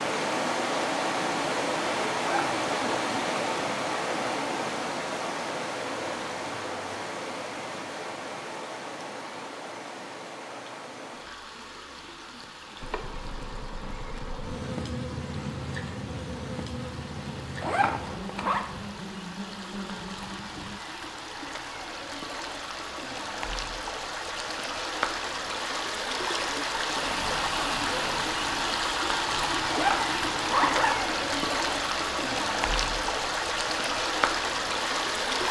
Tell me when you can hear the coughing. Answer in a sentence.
You can't hear the coughing here.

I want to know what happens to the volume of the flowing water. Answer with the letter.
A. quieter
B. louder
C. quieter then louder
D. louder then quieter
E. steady
C.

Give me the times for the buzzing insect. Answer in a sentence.
The buzzing insect can be heard from 12.8 to 20.8 s.